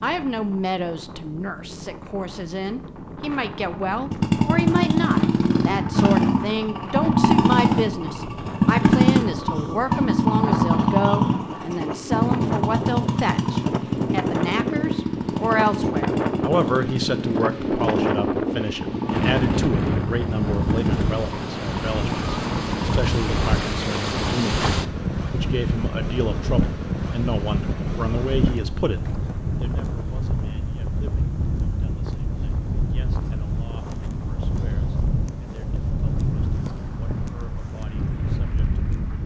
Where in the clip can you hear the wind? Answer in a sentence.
The wind can be heard from 0.0 to 39.2 s.